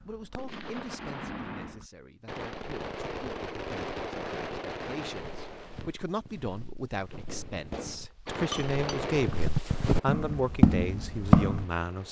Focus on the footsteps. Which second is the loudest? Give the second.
11 s.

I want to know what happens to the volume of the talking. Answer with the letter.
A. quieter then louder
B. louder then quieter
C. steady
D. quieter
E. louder
E.